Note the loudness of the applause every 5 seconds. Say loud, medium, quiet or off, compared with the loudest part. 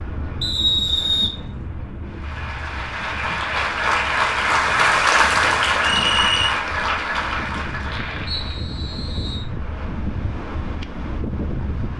loud, loud, off.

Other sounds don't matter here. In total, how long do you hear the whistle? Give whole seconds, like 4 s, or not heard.
3 s.